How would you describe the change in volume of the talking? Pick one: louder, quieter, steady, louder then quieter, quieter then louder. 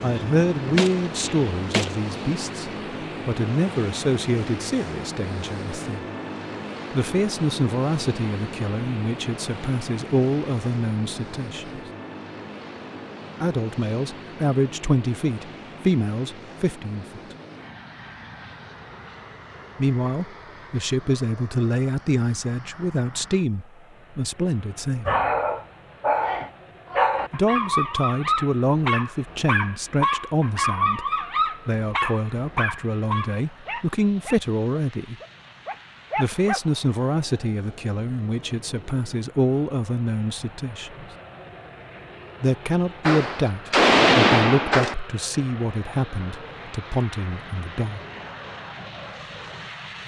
steady.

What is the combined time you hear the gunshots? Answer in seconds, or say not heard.
4 s.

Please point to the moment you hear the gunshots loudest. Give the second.
44 s.